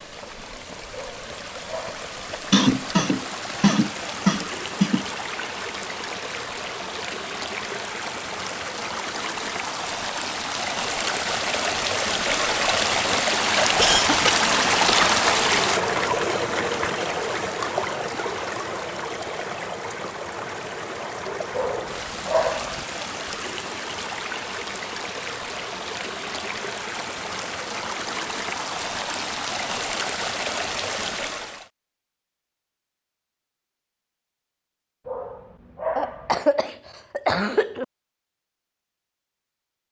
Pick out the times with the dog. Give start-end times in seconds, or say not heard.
0.9-2.1, 21.5-22.9, 35.0-36.4.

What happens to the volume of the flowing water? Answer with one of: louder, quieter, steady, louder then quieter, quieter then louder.
louder then quieter.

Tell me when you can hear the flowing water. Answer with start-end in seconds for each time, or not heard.
0.0-31.7.